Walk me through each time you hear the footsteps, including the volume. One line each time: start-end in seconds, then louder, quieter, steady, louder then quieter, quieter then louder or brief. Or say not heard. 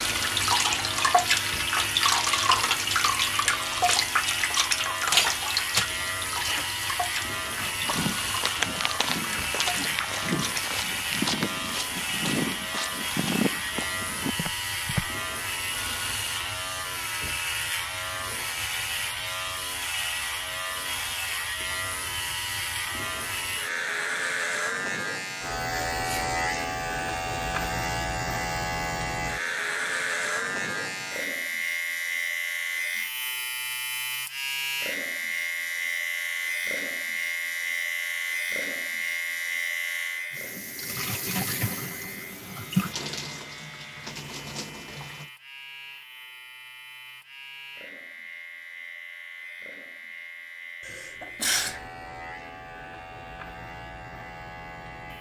7.5-15.1 steady.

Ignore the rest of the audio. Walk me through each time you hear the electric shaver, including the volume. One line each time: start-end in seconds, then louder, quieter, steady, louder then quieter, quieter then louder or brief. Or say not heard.
0.0-55.1 quieter.